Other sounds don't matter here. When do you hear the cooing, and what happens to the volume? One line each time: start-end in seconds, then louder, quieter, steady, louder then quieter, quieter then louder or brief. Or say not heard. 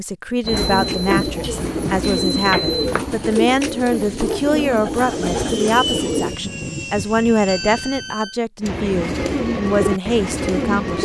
0.5-6.3 steady
8.6-11.0 brief.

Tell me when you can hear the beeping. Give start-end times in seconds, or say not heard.
0.5-3.0, 7.5-8.4.